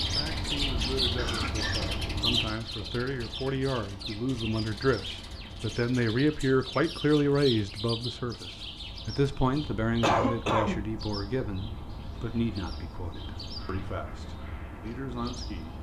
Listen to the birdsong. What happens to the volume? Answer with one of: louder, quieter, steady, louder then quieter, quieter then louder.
quieter.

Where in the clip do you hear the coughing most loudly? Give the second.
10 s.